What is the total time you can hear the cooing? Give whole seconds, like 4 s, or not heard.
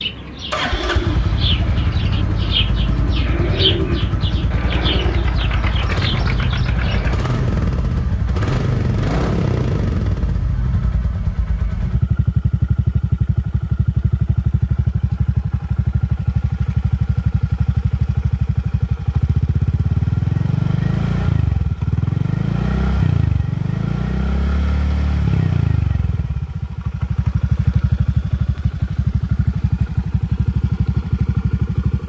7 s.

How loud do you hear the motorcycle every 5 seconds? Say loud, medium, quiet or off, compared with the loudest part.
medium, loud, loud, loud, loud, loud, loud.